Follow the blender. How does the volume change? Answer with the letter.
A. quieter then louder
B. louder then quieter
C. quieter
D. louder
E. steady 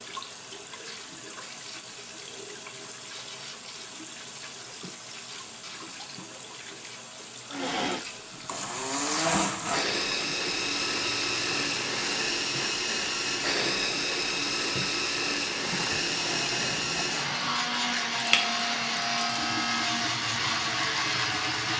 E.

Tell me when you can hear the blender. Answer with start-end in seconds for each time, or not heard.
7.5-21.7.